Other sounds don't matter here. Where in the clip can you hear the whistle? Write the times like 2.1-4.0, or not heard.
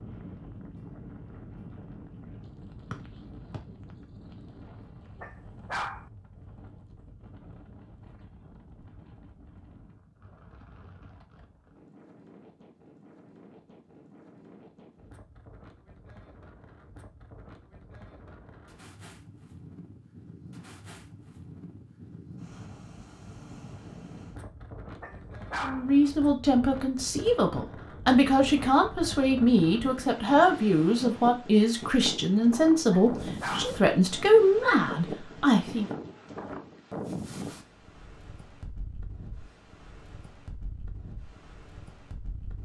2.9-3.6.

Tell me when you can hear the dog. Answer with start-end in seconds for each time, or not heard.
5.2-6.1, 25.0-25.9, 32.9-33.8.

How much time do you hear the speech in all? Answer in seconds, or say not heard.
10 s.